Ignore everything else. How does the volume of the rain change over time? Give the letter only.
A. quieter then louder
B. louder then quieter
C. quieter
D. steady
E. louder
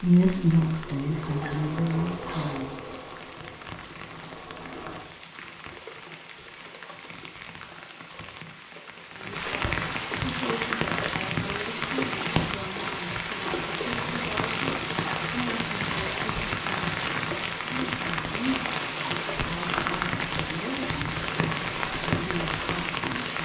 E.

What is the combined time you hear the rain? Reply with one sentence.
You can hear the rain for 23 seconds altogether.